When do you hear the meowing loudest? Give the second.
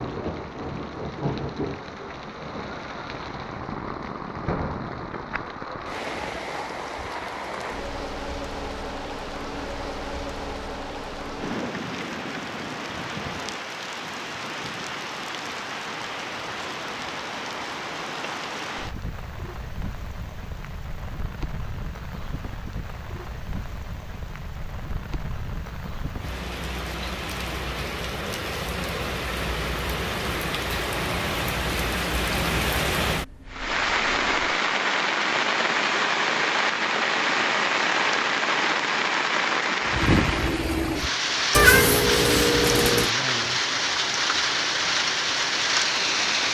42 s.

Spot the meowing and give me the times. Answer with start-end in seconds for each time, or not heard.
41.5-43.1.